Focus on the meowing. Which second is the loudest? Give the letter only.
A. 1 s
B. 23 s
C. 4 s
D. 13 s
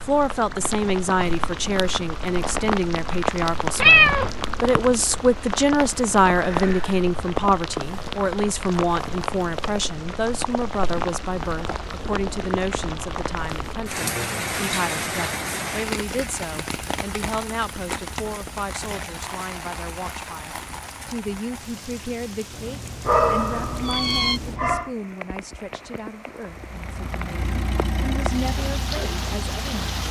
C.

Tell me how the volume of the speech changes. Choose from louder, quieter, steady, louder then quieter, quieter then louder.
quieter.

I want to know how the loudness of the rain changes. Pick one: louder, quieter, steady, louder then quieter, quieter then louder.
quieter.